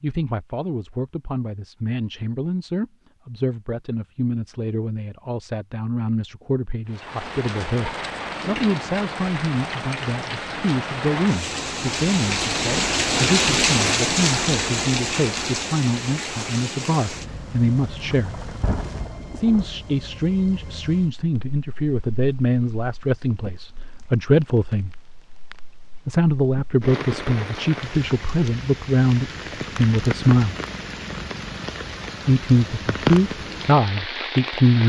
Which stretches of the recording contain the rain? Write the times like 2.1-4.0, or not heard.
6.9-34.8.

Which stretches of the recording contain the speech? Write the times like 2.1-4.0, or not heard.
0.0-18.4, 19.4-24.9, 26.1-30.6, 32.2-34.8.